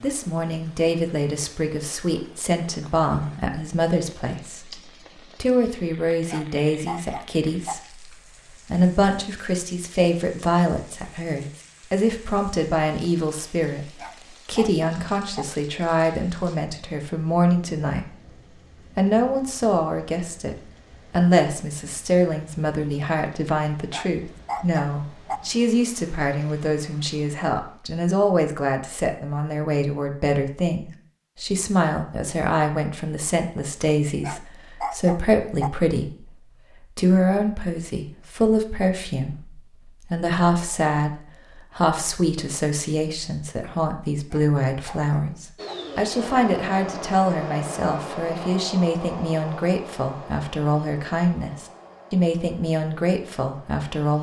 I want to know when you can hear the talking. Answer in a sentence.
You can hear the talking from 0.0 to 4.8 s and from 5.4 to 54.1 s.